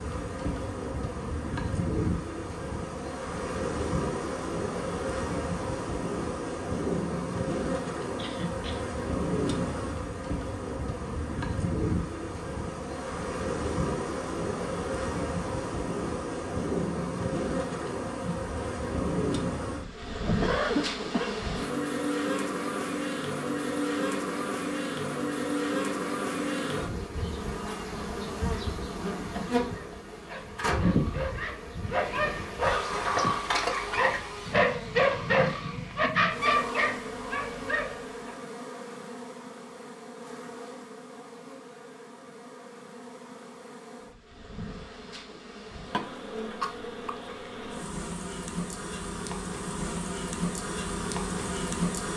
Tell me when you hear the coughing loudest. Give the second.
21 s.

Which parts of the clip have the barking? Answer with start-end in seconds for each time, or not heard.
29.7-38.4.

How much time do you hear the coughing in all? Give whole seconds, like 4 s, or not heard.
3 s.